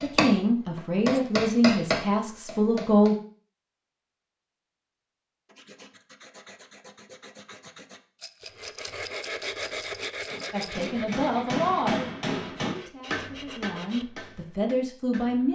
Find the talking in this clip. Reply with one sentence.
You can hear the talking from 0.0 to 3.1 s and from 10.5 to 15.5 s.